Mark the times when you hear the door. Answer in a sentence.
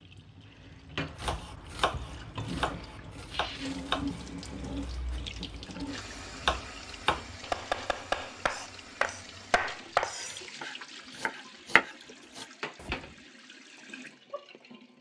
The door can't be heard in this clip.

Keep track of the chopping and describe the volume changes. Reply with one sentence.
The volume of the chopping goes up.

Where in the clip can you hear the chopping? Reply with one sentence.
You can hear the chopping from 1.1 to 13.1 s.